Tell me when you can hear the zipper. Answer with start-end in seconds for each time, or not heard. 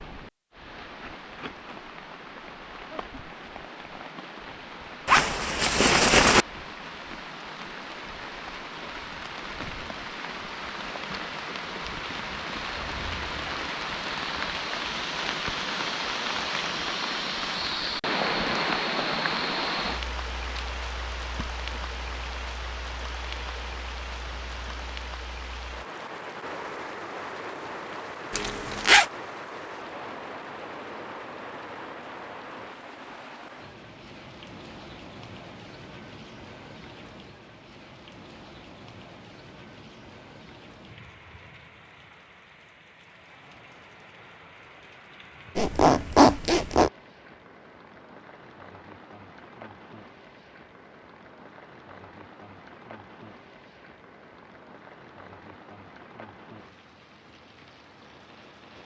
5.0-6.5, 28.3-29.1, 45.5-46.9.